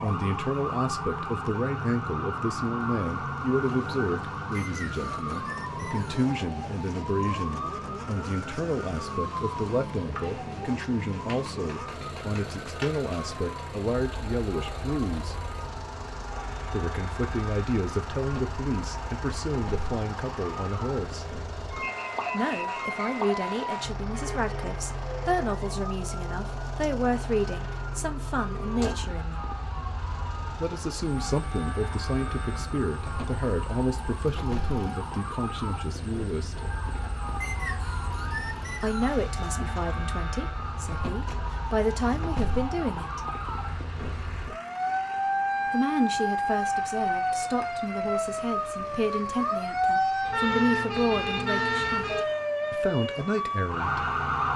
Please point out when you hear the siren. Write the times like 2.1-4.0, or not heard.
0.0-54.5.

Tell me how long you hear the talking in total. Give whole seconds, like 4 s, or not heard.
46 s.